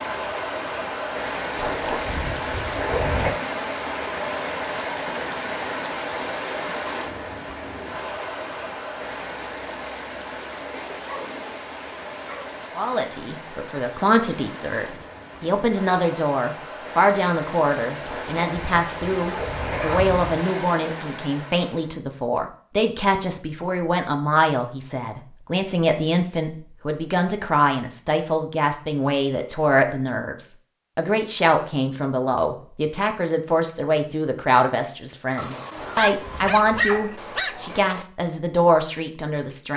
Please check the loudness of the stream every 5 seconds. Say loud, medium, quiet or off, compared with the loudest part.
loud, loud, medium, medium, medium, off, off, off.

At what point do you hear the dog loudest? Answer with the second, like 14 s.
37 s.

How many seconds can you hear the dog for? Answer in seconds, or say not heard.
5 s.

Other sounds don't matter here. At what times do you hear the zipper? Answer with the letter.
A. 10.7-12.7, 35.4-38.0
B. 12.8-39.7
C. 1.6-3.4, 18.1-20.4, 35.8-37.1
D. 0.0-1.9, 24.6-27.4
C.